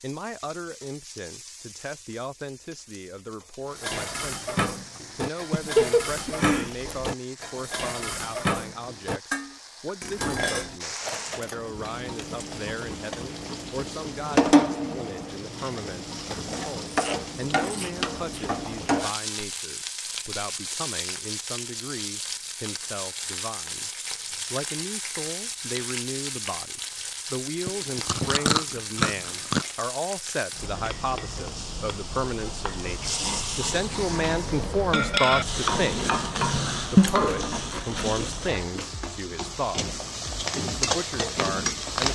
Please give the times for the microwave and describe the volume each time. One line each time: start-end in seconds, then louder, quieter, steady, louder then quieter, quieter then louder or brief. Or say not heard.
not heard.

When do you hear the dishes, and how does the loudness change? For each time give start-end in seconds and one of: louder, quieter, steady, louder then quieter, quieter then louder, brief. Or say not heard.
3.7-11.9 steady.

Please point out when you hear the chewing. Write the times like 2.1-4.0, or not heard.
5.5-7.2, 16.9-19.1, 27.6-29.6, 37.0-38.9.